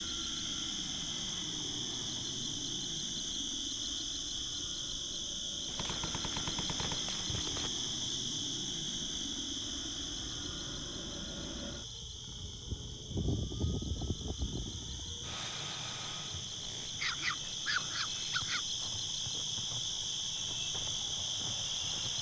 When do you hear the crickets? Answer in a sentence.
The crickets can be heard from 0.0 to 22.1 s.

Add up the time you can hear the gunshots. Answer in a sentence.
The gunshots can be heard for 2 seconds in total.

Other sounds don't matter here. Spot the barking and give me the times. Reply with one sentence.
You can hear the barking from 16.9 to 18.6 s.